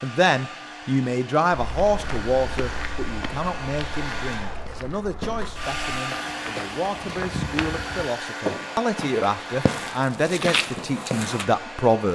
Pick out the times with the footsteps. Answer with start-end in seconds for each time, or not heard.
1.5-11.4.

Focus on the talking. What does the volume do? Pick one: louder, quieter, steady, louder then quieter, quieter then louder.
quieter then louder.